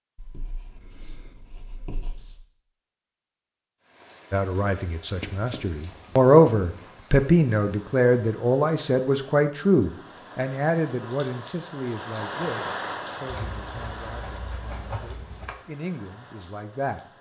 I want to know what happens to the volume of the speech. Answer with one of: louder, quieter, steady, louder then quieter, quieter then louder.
quieter.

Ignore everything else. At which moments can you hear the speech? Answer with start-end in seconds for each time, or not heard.
4.3-17.0.